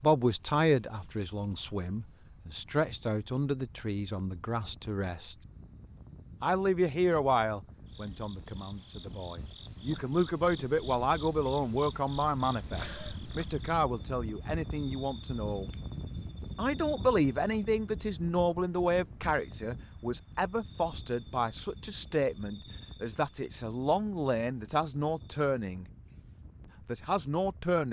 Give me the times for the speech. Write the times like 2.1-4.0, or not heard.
0.0-5.3, 6.4-15.7, 16.6-25.9, 26.9-27.8.